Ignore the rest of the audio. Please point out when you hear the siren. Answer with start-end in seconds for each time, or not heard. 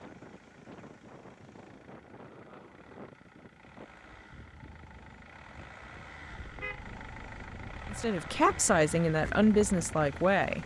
not heard.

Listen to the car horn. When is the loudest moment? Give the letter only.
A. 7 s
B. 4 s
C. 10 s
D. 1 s
A.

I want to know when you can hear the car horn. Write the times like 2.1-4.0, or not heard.
6.3-8.1.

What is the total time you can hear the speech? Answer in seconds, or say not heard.
3 s.